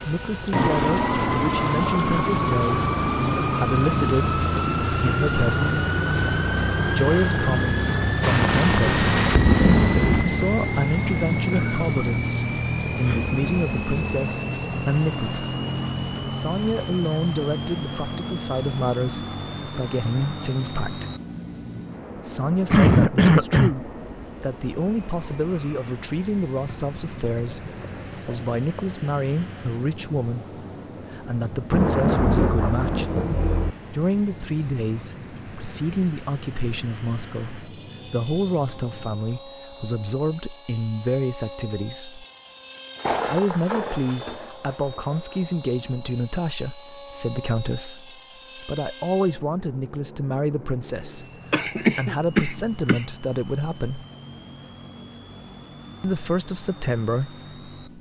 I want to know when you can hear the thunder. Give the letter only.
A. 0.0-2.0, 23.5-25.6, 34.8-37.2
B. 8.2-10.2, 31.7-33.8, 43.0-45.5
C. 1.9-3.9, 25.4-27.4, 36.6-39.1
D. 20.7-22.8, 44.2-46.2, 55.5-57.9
B.